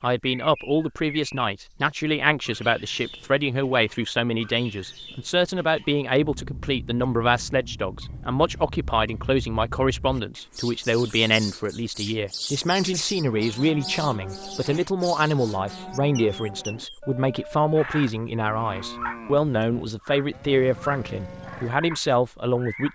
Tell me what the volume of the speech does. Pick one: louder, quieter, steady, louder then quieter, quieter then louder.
steady.